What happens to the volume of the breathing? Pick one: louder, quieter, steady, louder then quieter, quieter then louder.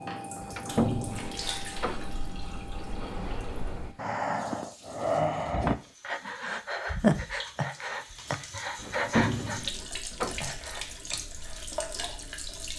louder then quieter.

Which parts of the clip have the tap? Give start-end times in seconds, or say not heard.
0.0-12.7.